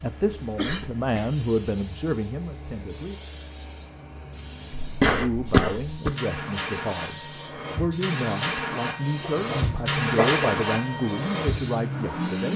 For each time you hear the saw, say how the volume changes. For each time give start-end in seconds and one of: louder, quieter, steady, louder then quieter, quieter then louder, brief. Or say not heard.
not heard.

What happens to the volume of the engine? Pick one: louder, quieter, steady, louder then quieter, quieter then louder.
louder.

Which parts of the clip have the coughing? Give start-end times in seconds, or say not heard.
0.3-1.3, 4.8-6.2, 9.3-10.4.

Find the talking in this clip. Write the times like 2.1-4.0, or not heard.
0.0-3.1, 5.2-12.5.